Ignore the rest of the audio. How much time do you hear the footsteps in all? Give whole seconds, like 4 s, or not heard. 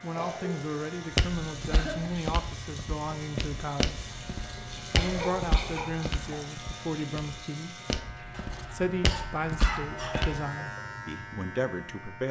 9 s.